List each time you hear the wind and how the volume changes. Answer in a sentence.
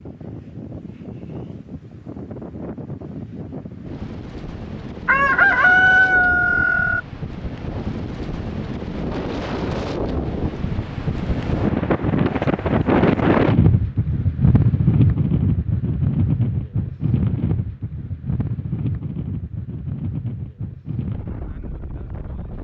The wind can be heard from 0.0 to 22.6 s, getting louder then quieter.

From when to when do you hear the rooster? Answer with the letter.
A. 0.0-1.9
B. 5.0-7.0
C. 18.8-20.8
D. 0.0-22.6
B.